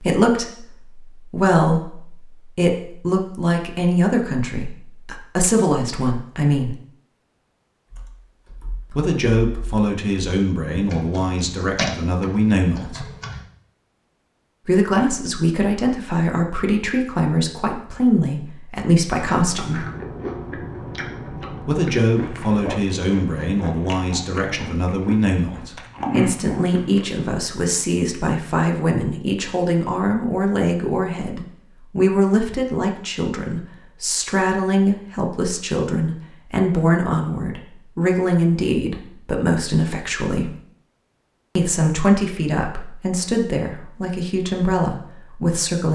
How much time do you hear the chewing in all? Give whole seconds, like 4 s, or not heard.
8 s.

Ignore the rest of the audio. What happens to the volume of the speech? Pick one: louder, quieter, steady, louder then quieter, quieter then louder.
steady.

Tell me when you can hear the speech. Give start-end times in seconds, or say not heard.
0.0-6.8, 8.9-13.1, 14.7-19.9, 21.6-40.5, 41.5-45.9.